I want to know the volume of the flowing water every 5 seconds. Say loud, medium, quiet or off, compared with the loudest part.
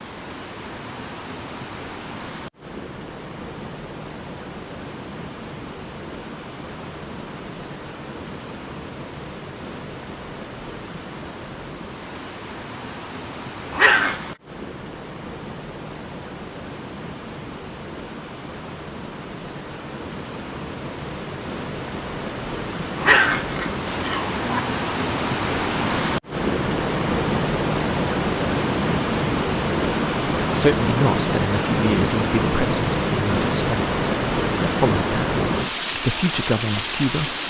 quiet, quiet, quiet, quiet, medium, loud, loud, loud.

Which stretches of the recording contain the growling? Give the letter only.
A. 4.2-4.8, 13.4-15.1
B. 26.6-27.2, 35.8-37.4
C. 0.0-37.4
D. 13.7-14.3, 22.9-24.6
D.